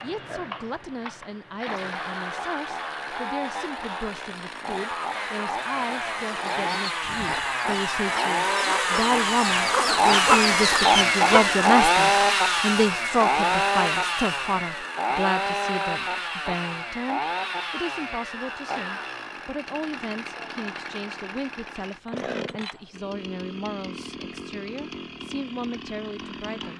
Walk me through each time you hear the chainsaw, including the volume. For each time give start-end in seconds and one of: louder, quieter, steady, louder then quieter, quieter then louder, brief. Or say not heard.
0.0-26.7 louder then quieter.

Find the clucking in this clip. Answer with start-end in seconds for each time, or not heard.
6.2-11.6.